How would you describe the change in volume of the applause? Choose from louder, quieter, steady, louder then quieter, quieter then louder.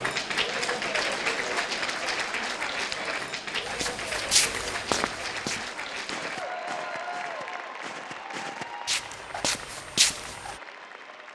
quieter.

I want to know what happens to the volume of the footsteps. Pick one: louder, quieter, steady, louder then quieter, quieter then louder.
quieter then louder.